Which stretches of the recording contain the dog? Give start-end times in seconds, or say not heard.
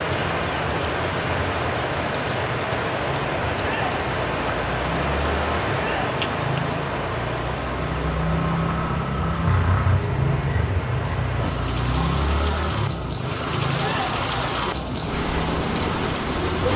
not heard.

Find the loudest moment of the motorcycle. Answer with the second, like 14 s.
10 s.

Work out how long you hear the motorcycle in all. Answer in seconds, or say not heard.
17 s.